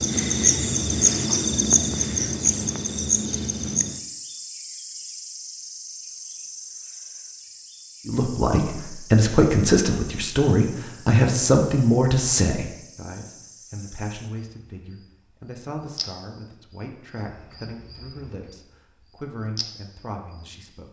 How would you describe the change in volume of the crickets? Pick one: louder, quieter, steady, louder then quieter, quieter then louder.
quieter.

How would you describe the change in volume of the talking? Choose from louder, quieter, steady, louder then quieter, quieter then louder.
quieter.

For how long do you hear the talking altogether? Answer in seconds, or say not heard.
13 s.